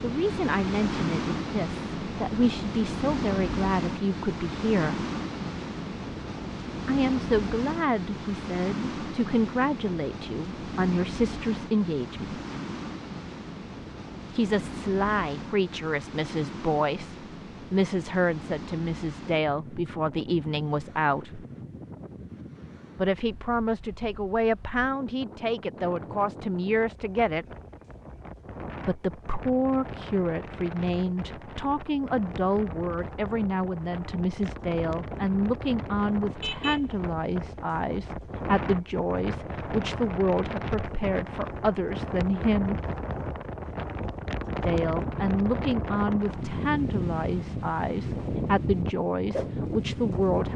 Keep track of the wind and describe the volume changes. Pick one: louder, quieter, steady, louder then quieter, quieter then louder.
quieter then louder.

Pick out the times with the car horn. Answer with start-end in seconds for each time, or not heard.
36.4-36.8.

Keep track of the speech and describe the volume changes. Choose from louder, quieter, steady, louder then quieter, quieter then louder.
steady.